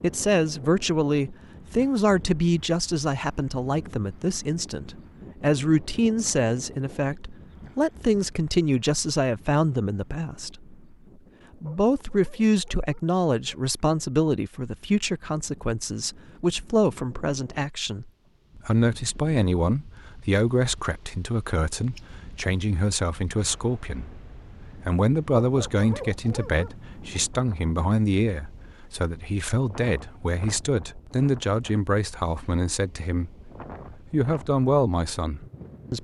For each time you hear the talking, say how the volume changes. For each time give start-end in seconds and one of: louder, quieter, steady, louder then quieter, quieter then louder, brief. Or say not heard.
0.0-10.8 steady
11.6-35.9 steady.